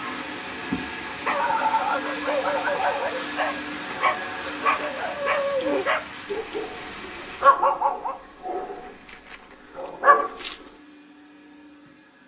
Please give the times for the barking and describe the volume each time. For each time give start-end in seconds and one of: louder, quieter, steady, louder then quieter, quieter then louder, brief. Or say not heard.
1.2-10.7 steady.